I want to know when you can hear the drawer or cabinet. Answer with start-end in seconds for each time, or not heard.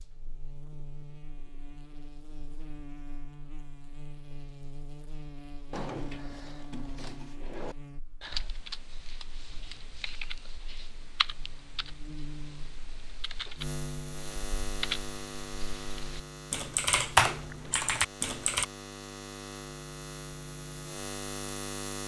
5.7-7.8.